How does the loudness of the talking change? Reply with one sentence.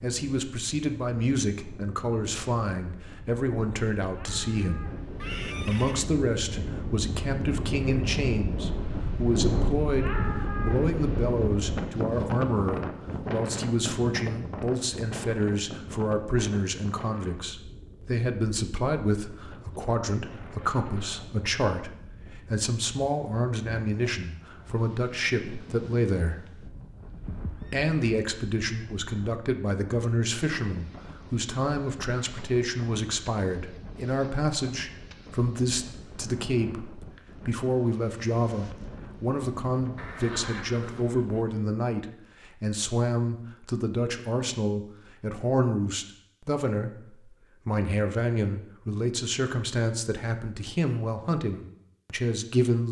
The loudness of the talking stays about the same.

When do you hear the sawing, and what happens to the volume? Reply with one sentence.
The sawing can't be heard in this clip.